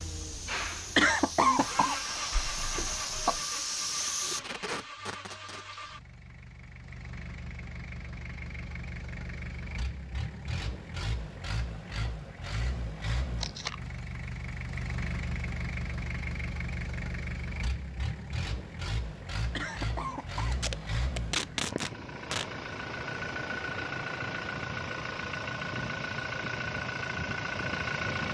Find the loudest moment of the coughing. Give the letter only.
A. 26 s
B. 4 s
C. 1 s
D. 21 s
C.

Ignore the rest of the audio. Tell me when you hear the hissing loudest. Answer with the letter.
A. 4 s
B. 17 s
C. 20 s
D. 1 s
A.